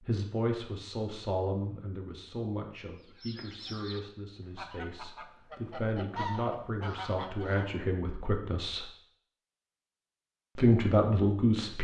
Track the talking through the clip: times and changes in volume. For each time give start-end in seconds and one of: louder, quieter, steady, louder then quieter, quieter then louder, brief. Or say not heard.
0.1-8.8 quieter then louder
10.6-11.7 brief.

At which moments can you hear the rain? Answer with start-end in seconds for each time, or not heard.
not heard.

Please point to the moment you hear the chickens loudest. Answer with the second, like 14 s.
6 s.